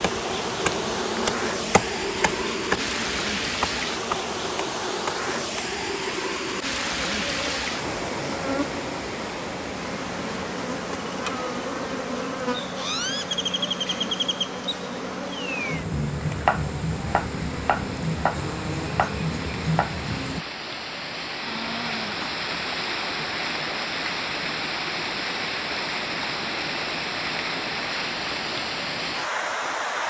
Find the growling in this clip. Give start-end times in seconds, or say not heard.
21.4-22.3.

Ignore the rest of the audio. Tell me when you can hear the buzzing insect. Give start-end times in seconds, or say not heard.
0.0-20.4.